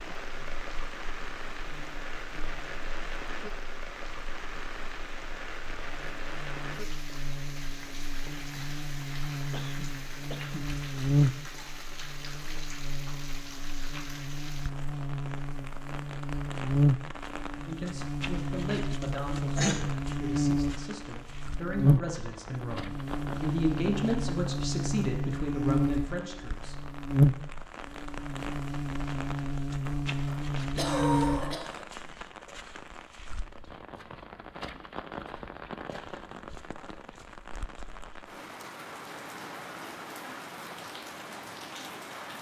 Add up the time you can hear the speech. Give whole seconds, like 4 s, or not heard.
9 s.